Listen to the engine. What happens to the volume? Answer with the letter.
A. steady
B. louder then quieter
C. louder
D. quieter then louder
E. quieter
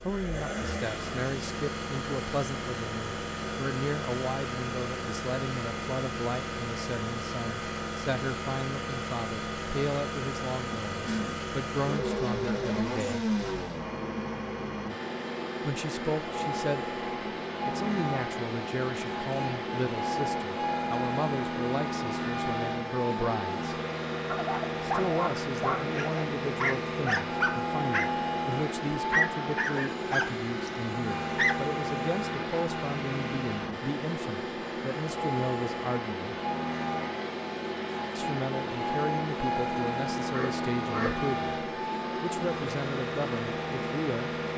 A.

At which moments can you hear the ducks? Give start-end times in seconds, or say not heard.
40.2-41.7.